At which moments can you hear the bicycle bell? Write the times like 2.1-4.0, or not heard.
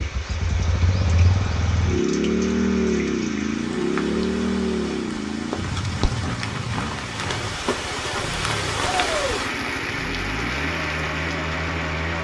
not heard.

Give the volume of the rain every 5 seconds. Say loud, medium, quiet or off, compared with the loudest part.
medium, loud, loud.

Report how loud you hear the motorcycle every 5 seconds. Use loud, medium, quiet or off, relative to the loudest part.
loud, medium, medium.